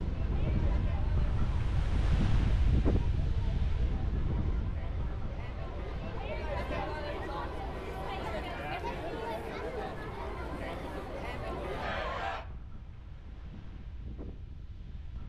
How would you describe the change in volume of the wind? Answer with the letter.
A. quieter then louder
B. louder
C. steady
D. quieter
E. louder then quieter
D.